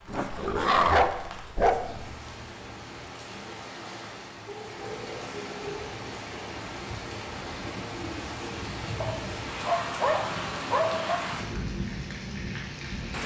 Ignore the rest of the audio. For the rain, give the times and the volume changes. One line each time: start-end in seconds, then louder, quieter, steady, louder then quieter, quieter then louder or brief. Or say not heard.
0.0-13.2 louder.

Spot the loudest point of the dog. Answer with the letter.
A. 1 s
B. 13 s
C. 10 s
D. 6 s
A.